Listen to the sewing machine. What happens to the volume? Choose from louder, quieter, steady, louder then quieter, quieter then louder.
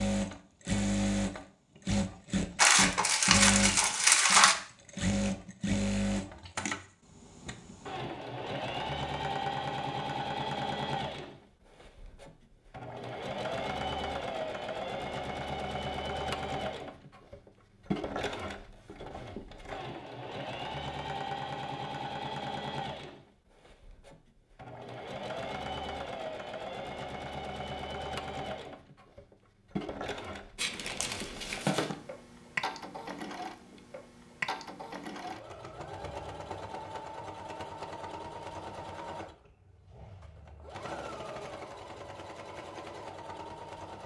quieter.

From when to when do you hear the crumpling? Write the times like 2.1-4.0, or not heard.
2.5-4.5, 30.6-31.9.